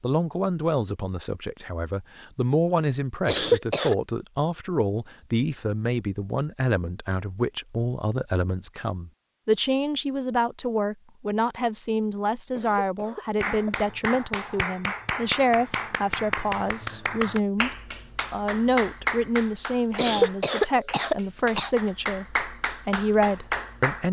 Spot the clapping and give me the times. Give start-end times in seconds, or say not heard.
13.4-24.0.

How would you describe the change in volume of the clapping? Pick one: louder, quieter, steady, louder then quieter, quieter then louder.
quieter then louder.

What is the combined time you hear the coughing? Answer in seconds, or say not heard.
4 s.